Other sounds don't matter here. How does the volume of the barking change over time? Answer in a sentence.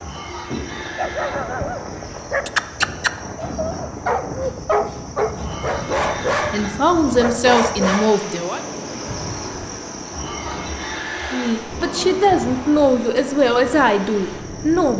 The volume of the barking stays about the same.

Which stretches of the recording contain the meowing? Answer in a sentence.
The meowing can't be heard in this clip.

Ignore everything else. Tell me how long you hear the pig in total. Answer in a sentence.
You can hear the pig for 5 seconds altogether.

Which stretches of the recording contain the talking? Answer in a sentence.
The talking can be heard from 6.5 to 8.6 s and from 11.3 to 14.9 s.